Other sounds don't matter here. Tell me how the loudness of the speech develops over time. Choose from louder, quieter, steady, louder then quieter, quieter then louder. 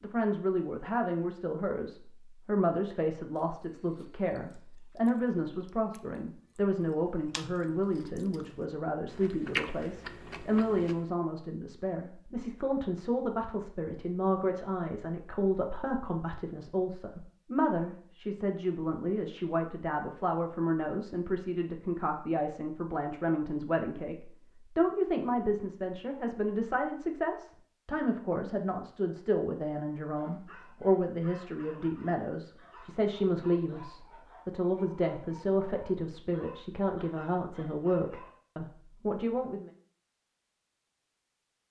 steady.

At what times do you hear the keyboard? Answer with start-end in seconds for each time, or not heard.
not heard.